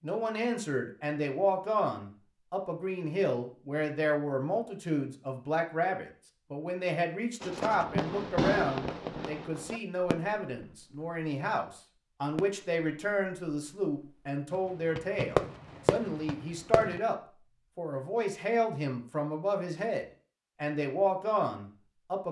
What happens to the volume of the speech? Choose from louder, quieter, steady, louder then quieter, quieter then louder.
steady.